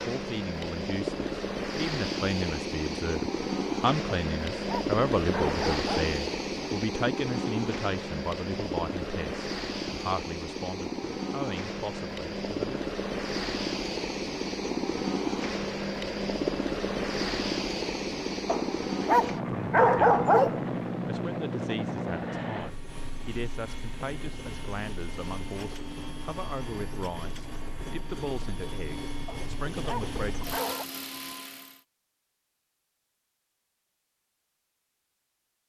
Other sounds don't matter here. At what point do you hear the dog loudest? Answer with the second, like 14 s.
20 s.